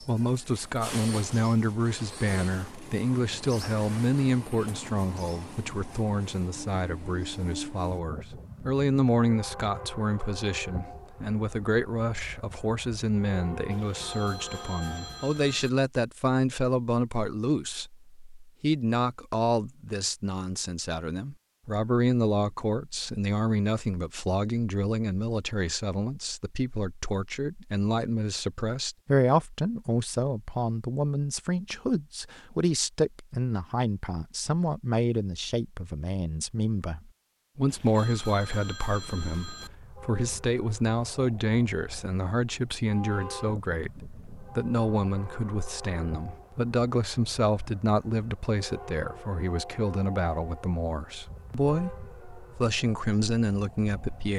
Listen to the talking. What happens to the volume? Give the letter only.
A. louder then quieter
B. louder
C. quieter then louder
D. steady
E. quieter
D.